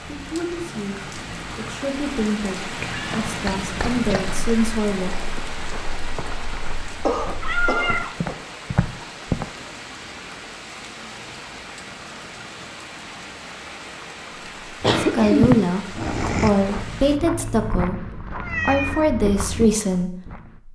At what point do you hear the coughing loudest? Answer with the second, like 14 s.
15 s.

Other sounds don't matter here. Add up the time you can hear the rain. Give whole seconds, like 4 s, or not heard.
17 s.